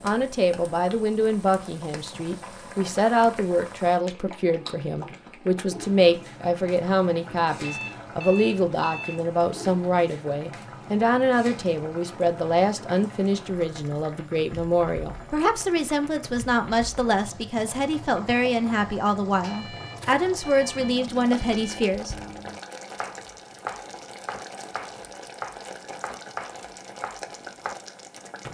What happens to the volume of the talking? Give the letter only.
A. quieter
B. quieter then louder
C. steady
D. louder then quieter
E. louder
C.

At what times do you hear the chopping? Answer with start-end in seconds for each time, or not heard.
19.9-27.8.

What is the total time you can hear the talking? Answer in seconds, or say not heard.
22 s.